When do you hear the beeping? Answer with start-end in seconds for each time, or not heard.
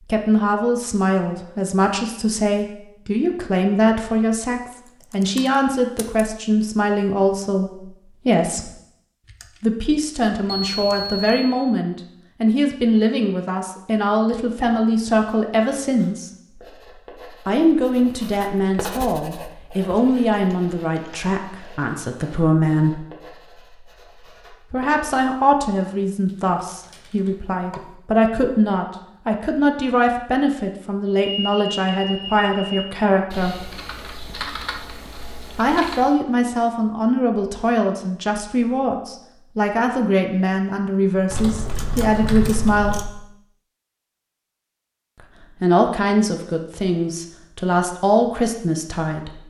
10.4-11.6, 31.2-32.9.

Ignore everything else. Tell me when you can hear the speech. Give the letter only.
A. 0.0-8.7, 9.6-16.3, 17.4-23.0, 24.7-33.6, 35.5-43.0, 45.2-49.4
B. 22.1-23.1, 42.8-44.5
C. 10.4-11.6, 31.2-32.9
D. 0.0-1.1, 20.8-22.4
A.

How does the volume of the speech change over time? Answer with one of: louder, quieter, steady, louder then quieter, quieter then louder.
steady.